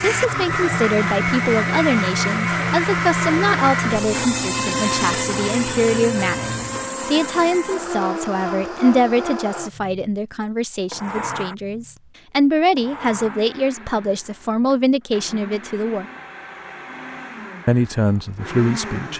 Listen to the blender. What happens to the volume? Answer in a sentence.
The volume of the blender goes down.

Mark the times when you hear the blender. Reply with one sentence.
The blender can be heard from 0.0 to 19.1 s.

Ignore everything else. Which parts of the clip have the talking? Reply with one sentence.
The talking can be heard from 0.0 to 16.1 s and from 17.6 to 19.1 s.